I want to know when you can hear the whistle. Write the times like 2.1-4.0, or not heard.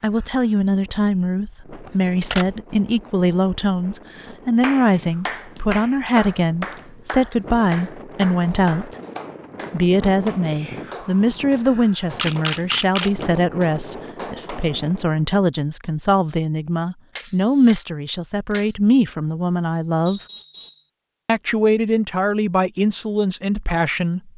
20.1-20.9.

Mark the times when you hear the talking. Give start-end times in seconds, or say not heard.
0.0-8.9, 9.7-20.2, 21.2-24.3.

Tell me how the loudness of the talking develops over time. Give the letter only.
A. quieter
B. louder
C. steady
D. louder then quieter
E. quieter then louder
C.